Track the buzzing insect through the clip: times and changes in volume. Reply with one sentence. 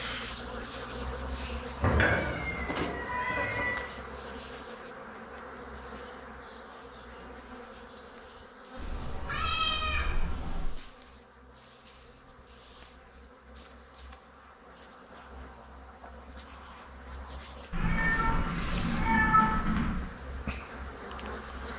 You can hear the buzzing insect from 0.0 to 21.7 s, getting quieter then louder.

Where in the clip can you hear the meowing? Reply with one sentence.
The meowing can be heard from 1.8 to 3.8 s, from 8.8 to 10.7 s and from 17.7 to 19.9 s.